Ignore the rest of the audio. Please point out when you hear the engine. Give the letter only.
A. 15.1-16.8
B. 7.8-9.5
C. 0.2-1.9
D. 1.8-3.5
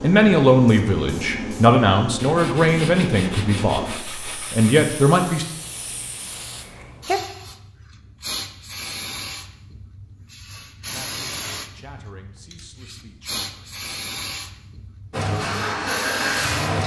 A.